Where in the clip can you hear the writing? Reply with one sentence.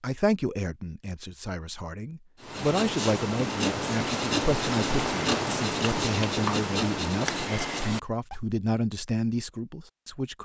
The writing can be heard from 2.4 to 8.4 s.